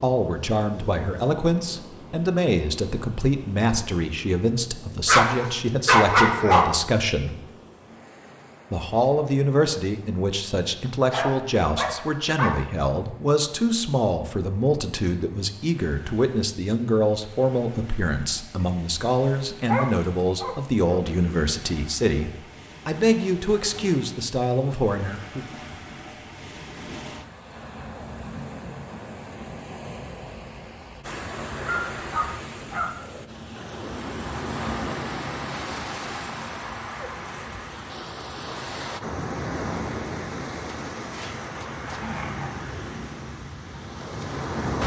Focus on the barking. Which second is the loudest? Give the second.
6 s.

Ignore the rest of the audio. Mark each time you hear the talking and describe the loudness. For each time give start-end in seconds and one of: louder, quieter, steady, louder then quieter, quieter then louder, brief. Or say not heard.
0.0-7.3 steady
8.7-25.4 steady.